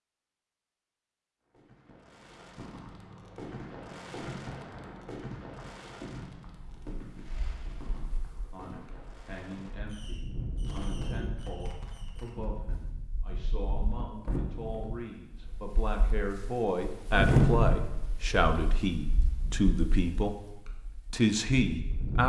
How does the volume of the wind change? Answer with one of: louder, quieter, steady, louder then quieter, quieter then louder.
louder then quieter.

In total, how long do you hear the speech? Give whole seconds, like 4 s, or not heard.
13 s.